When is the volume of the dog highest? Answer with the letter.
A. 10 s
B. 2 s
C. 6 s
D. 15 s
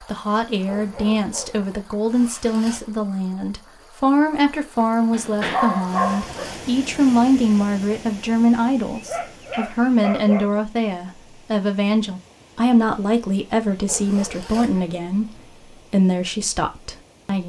C.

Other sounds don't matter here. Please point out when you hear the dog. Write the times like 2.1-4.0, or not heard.
0.7-2.3, 5.1-6.5, 8.9-10.6, 13.8-15.5.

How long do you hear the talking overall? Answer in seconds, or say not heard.
17 s.